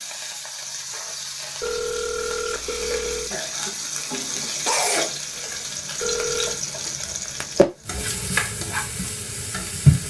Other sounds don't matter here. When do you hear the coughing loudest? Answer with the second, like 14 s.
5 s.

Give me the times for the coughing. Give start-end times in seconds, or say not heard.
3.3-5.2.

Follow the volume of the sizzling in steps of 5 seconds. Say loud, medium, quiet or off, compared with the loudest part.
medium, loud.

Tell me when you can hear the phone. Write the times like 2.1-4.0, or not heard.
1.6-3.4, 6.0-6.6.